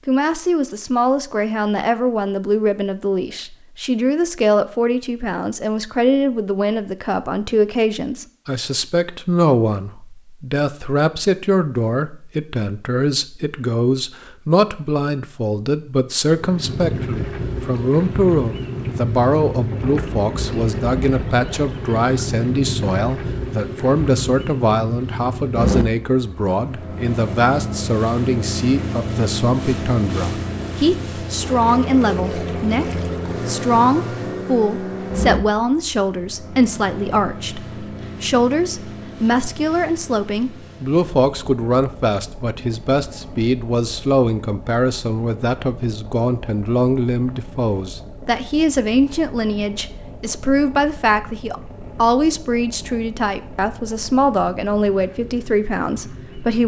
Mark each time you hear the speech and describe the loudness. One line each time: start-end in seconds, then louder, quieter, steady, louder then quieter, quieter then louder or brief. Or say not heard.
0.1-56.6 steady.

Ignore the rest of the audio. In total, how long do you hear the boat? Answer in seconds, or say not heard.
40 s.